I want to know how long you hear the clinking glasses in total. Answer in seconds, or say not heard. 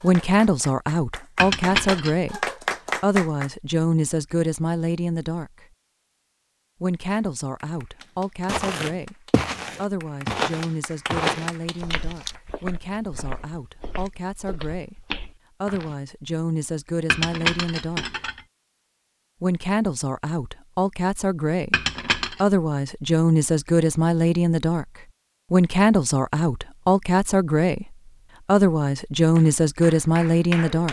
3 s.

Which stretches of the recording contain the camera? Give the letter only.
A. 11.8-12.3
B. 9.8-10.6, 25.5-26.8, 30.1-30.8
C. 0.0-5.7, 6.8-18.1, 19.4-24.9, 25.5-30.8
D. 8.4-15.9
A.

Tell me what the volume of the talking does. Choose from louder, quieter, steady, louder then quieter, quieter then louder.
quieter then louder.